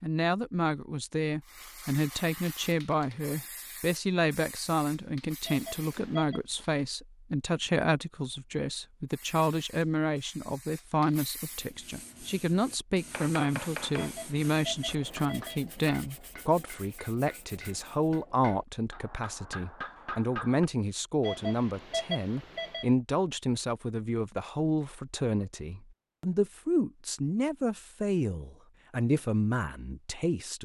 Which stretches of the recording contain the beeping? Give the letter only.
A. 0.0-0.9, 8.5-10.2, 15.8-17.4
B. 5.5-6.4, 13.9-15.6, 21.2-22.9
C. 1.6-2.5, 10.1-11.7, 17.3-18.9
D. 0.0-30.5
B.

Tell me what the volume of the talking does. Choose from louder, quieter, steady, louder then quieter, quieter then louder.
steady.